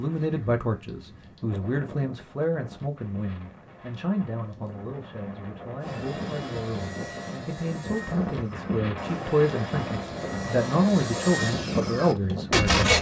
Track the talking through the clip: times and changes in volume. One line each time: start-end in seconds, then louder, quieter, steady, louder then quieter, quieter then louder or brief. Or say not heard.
0.0-12.9 quieter then louder.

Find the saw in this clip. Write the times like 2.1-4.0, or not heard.
5.8-12.9.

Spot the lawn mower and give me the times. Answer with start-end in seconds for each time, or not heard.
not heard.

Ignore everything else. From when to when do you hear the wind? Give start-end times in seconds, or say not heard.
0.0-12.7.